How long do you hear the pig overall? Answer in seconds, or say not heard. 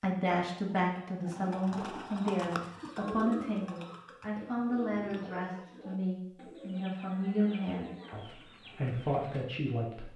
not heard.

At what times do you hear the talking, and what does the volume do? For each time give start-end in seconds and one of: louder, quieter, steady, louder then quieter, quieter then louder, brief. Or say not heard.
0.0-10.1 steady.